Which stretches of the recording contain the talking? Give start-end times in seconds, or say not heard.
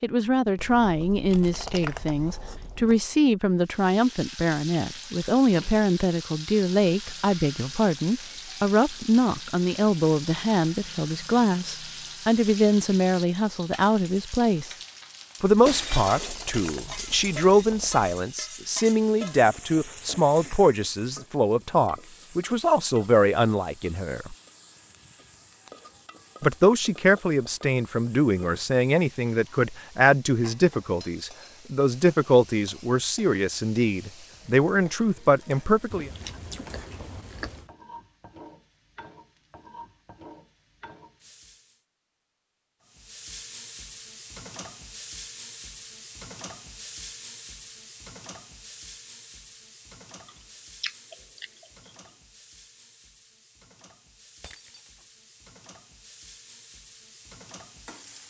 0.0-14.8, 15.4-24.4, 26.4-36.1.